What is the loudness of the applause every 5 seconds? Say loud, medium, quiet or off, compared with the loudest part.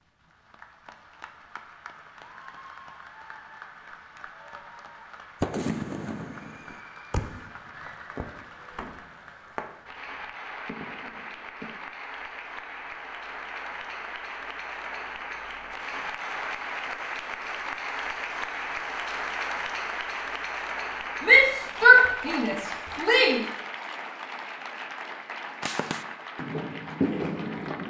quiet, quiet, medium, loud, loud, medium.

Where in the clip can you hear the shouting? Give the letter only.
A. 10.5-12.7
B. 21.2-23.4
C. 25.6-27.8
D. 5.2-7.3
B.